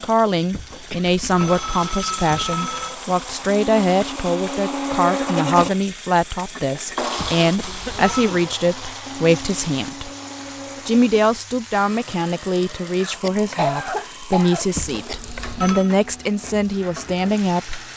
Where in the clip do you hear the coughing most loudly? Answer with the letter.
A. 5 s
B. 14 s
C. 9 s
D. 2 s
B.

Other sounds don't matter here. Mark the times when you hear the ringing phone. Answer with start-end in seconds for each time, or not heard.
0.5-3.0, 7.2-8.3, 14.8-15.9.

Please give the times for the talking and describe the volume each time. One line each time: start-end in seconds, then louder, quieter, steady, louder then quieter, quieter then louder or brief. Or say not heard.
0.0-10.1 steady
10.8-17.9 steady.